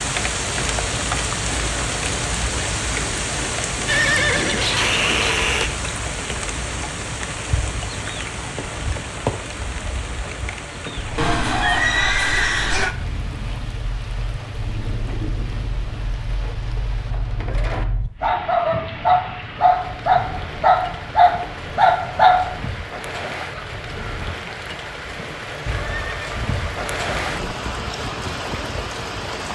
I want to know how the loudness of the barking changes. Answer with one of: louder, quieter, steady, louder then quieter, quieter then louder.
louder.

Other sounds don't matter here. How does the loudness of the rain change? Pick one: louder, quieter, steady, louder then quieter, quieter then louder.
quieter then louder.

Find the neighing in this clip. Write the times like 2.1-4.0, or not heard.
3.9-5.8, 11.2-12.9, 25.6-27.6.